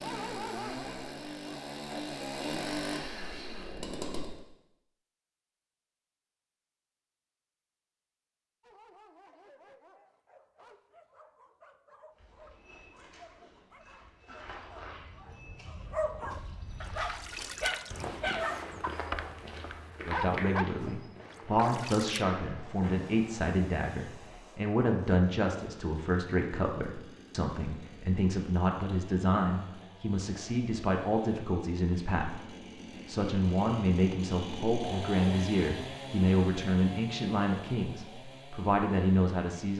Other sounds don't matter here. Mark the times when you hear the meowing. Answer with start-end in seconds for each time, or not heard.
not heard.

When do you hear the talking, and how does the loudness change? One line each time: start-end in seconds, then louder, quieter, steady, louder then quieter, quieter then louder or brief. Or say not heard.
20.1-39.7 steady.